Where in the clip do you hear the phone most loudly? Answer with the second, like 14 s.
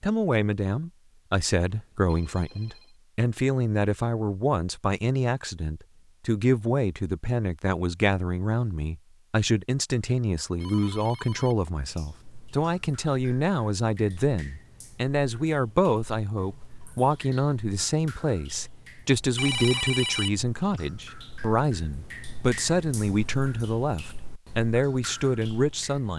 20 s.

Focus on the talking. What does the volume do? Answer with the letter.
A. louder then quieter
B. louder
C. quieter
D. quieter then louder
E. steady
E.